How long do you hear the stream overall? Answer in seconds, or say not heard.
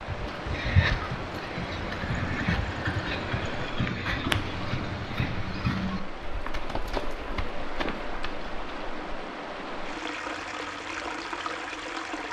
12 s.